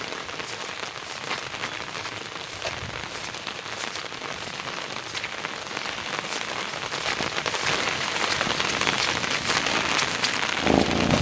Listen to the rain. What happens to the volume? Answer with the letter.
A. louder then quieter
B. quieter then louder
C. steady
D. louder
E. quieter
D.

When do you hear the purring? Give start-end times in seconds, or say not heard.
8.6-11.1.